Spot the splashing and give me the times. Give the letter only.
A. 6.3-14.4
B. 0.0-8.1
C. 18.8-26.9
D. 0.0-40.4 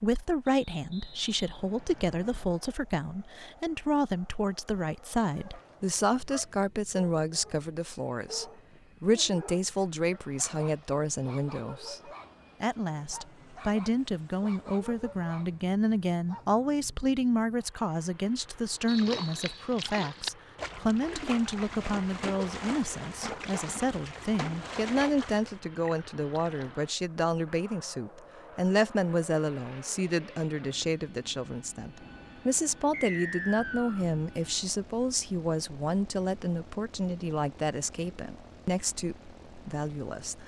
C.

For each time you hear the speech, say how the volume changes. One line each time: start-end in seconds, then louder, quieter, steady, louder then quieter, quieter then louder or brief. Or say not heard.
0.0-40.4 steady.